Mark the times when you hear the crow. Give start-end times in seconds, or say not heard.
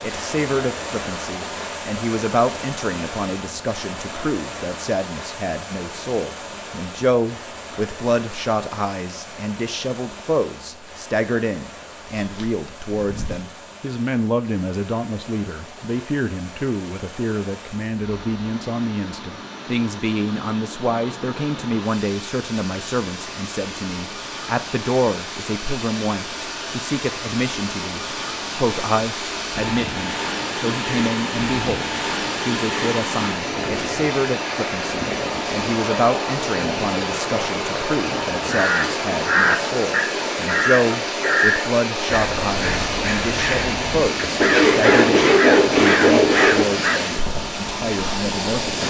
38.5-47.0.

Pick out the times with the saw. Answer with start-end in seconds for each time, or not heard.
12.0-13.5, 44.4-46.6.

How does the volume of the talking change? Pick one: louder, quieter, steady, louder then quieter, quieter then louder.
steady.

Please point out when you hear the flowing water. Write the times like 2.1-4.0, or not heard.
0.0-48.8.